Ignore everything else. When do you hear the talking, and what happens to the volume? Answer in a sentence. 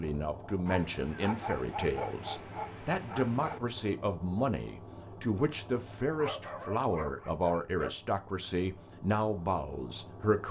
You can hear the talking from 0.0 to 10.4 s, at a steady volume.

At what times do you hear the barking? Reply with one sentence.
The barking can be heard from 0.7 to 3.6 s and from 6.1 to 8.0 s.